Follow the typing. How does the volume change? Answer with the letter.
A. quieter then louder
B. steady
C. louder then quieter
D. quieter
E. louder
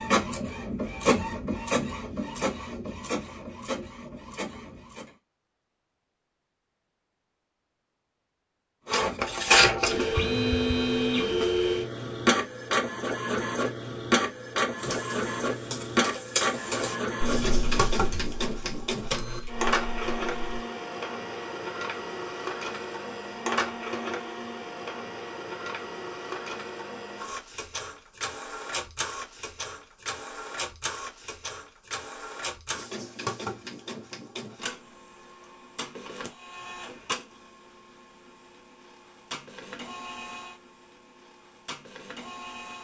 C.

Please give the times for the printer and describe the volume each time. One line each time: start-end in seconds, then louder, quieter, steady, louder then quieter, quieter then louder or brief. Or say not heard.
0.0-5.1 quieter
8.8-42.7 quieter.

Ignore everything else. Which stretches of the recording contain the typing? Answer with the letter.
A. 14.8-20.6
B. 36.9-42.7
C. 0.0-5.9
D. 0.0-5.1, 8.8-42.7
A.